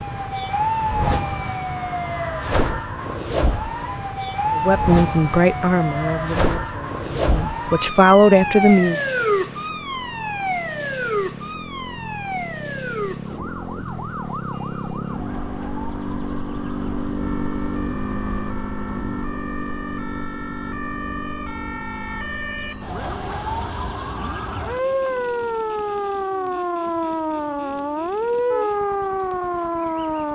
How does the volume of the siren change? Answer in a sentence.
The volume of the siren goes down, then up.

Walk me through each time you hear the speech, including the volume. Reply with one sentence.
The speech can be heard from 4.5 to 9.0 s, getting quieter then louder.